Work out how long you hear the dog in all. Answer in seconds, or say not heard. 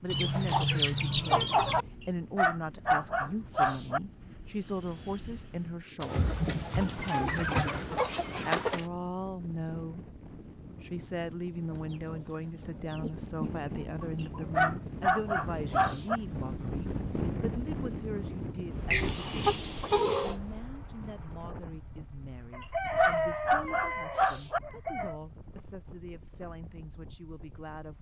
6 s.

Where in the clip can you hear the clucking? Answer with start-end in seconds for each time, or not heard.
0.1-1.9, 6.0-8.8, 11.7-14.7, 18.9-20.4, 22.5-25.2.